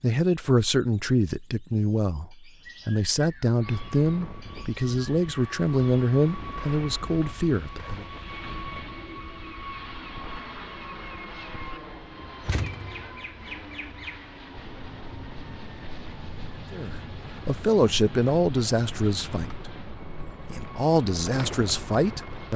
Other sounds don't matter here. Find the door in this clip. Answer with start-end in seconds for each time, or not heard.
12.4-13.0.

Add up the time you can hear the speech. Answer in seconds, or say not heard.
13 s.